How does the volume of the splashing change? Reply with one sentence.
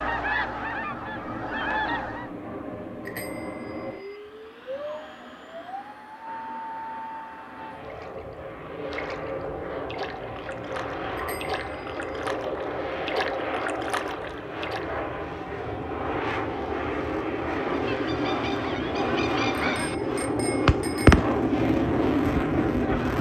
The loudness of the splashing goes up.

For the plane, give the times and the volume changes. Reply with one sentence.
You can hear the plane from 0.0 to 23.1 s, getting louder.